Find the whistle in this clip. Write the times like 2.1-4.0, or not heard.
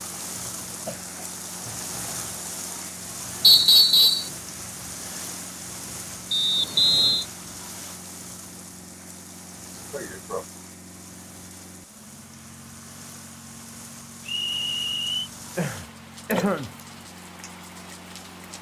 3.4-4.3, 6.3-7.2, 14.2-15.3.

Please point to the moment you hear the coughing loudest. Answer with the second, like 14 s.
16 s.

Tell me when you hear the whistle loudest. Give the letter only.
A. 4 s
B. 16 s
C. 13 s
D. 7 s
A.